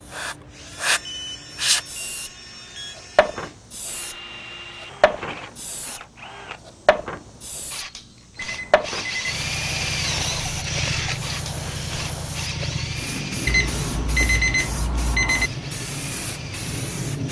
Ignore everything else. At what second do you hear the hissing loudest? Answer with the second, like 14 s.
1 s.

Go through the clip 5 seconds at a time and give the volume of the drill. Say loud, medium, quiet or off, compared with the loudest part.
medium, loud, loud, medium.